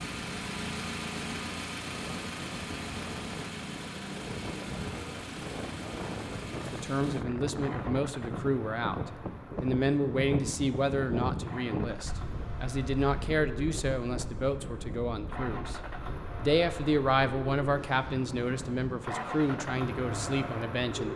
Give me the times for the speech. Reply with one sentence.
The speech can be heard from 6.7 to 15.8 s and from 16.4 to 21.1 s.